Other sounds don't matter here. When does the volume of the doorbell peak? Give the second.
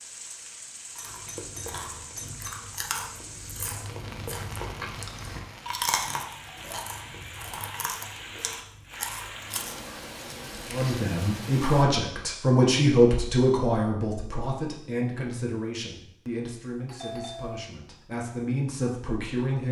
17 s.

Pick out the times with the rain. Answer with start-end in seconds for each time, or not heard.
0.0-11.8.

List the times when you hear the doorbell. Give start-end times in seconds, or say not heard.
0.9-2.5, 16.9-17.7.